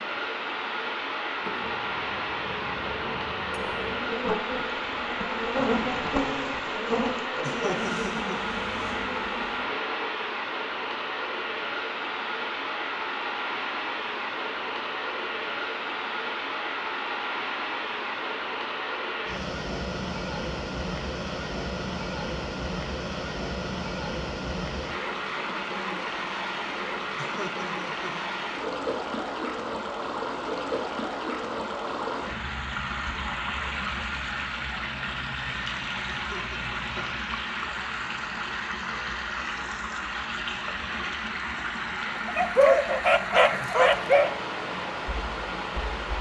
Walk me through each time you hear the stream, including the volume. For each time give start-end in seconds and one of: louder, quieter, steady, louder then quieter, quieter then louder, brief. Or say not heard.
0.0-46.1 steady.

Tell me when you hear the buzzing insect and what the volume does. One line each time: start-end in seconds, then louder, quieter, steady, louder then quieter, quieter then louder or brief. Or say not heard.
1.3-10.2 louder then quieter.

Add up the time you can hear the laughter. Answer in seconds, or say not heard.
3 s.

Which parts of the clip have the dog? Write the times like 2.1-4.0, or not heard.
42.1-44.3.